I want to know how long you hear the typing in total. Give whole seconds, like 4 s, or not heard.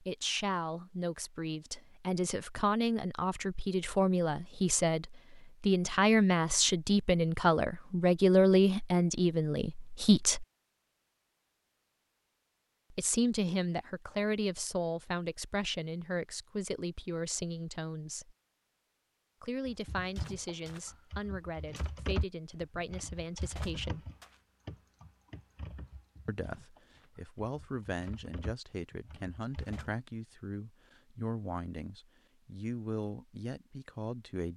10 s.